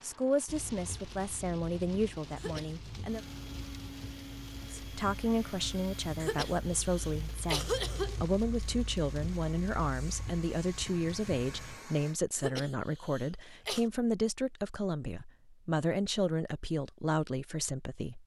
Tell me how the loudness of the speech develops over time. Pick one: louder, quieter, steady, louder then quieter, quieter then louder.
steady.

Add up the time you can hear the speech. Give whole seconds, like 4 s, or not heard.
17 s.